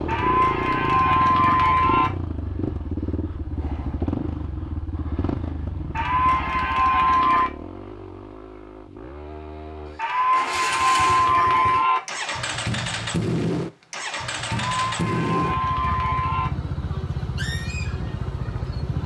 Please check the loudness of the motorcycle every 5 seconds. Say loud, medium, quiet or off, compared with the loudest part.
loud, medium, loud, loud.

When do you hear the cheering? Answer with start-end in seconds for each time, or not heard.
0.1-2.1, 5.9-7.5, 9.9-12.0, 14.4-16.5.